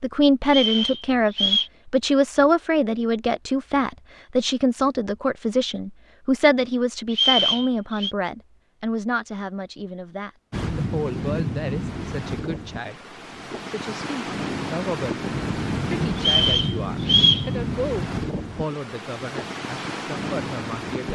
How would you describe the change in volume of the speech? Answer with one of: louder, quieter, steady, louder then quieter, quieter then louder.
quieter.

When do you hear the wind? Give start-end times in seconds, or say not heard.
10.5-21.1.